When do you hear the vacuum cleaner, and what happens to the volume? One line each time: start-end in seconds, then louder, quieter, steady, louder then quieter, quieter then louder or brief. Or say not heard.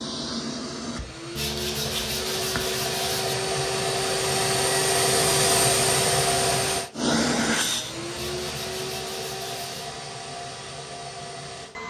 0.0-11.8 louder then quieter.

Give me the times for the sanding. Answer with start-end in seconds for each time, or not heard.
1.4-3.4, 8.2-9.8.